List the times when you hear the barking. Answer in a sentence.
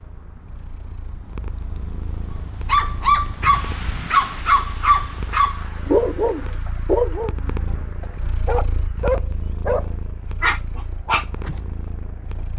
The barking can be heard from 2.6 to 11.6 s.